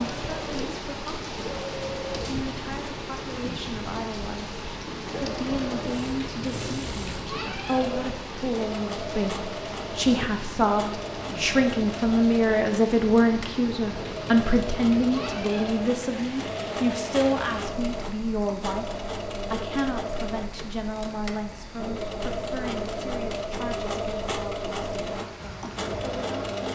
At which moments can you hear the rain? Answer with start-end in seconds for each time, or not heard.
0.0-26.7.